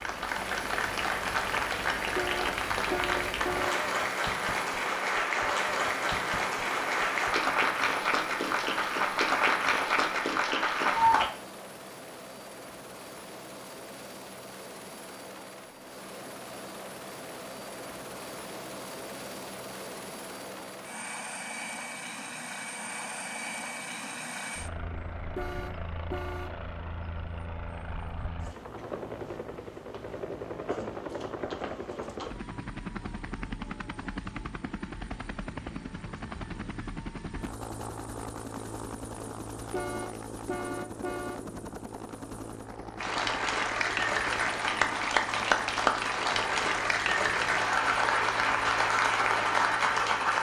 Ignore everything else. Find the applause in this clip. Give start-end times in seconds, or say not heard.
0.0-11.3, 43.0-50.3.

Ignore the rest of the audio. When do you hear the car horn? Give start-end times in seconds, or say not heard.
2.1-3.8, 25.4-26.6, 39.7-41.5.